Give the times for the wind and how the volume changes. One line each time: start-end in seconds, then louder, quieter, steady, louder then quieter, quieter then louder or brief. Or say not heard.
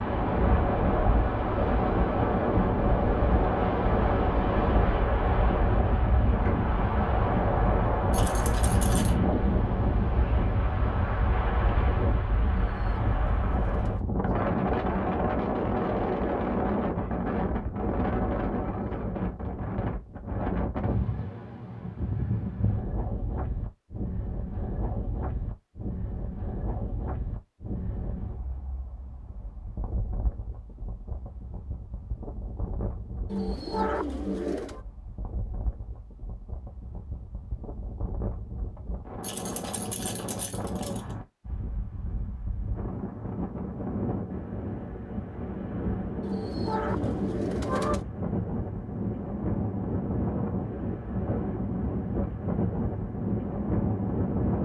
0.0-54.6 quieter then louder.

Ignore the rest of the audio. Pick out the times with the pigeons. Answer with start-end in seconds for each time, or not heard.
12.7-14.1, 33.2-34.8, 46.2-48.0.